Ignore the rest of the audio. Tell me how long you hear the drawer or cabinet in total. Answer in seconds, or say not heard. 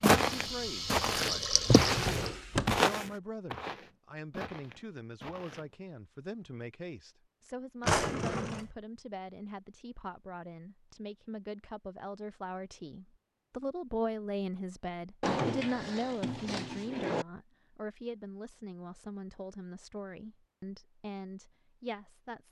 4 s.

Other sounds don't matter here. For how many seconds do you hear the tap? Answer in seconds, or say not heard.
2 s.